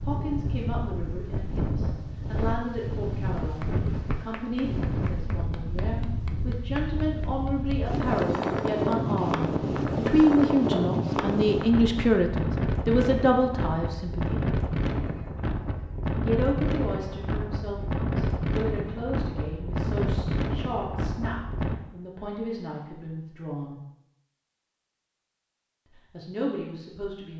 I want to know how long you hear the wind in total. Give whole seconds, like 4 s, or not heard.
22 s.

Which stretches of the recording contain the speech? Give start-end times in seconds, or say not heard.
0.1-14.5, 16.2-23.8, 25.9-27.3.